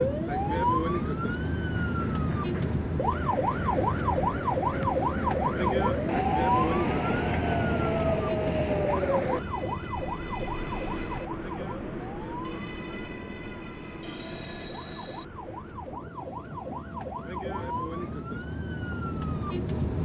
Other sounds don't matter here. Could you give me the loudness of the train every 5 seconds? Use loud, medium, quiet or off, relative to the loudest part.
medium, loud, medium, quiet.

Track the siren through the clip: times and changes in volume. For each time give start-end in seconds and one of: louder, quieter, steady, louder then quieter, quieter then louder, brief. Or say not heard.
0.0-20.0 quieter then louder.